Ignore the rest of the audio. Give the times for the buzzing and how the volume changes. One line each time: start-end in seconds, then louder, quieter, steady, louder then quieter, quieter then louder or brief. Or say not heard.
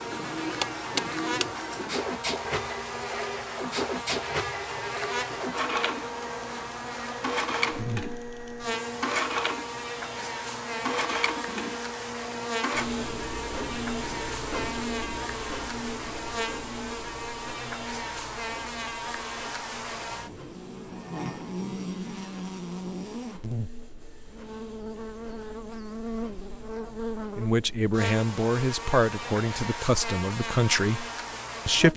0.0-31.9 steady.